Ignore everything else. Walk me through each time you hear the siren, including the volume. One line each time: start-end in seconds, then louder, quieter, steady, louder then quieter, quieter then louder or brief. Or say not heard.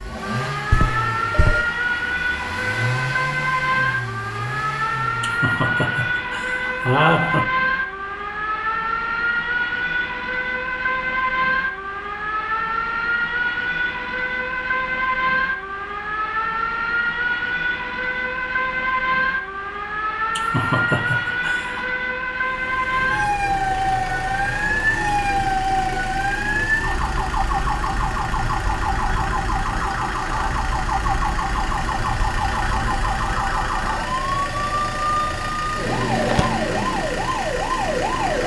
0.0-38.4 steady.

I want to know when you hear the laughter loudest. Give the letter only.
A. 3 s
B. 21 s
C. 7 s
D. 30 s
C.